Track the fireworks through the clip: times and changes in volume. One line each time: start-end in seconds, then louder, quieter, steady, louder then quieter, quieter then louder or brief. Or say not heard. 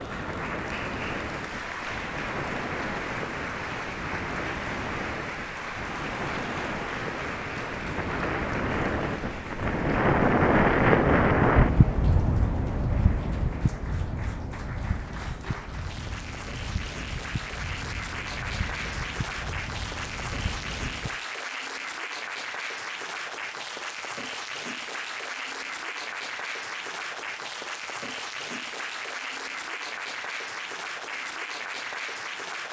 not heard.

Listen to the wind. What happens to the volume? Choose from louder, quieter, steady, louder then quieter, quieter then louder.
louder then quieter.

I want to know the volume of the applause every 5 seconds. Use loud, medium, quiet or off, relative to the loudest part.
loud, loud, medium, loud, loud, loud, loud.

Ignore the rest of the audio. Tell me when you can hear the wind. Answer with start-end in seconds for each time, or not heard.
0.0-21.2.